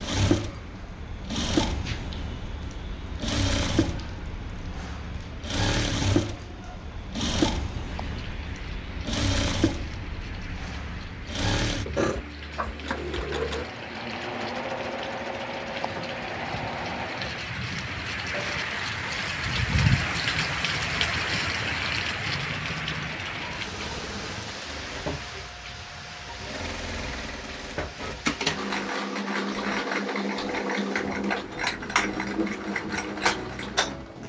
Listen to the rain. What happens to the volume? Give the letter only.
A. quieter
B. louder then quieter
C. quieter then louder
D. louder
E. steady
B.